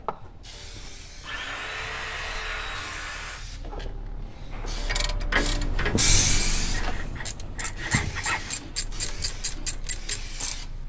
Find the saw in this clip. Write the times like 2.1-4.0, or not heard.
1.2-3.5, 6.7-8.6.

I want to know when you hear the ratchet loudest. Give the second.
5 s.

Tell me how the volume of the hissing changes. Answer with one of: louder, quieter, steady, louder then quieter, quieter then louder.
louder then quieter.